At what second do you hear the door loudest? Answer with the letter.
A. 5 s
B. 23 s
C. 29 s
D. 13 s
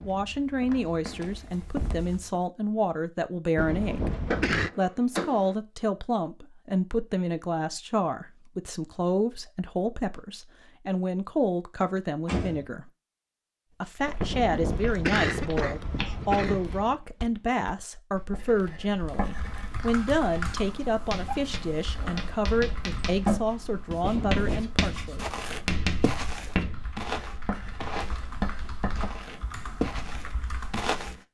B.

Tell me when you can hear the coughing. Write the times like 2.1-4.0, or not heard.
3.5-4.7, 14.2-16.9, 24.0-24.7.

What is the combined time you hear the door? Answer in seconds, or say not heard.
4 s.